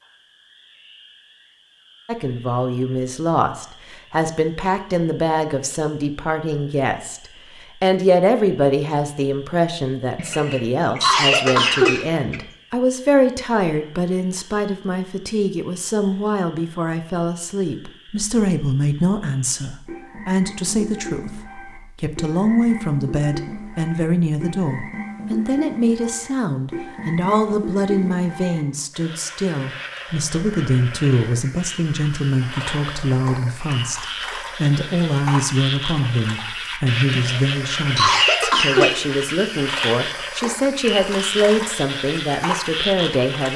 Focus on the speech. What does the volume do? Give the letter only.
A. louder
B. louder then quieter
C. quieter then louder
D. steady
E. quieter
D.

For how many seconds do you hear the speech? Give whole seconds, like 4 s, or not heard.
41 s.